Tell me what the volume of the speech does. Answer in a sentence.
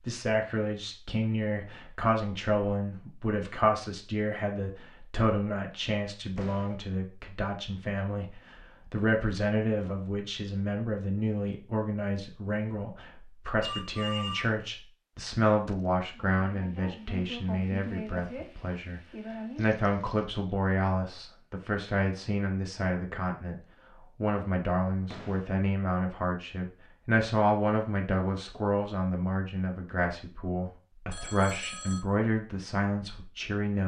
The volume of the speech stays about the same.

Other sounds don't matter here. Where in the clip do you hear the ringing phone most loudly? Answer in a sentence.
The loudest moment of the ringing phone is at 14 seconds.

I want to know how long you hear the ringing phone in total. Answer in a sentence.
You can hear the ringing phone for 2 seconds altogether.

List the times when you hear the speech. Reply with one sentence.
You can hear the speech from 0.0 to 33.8 s.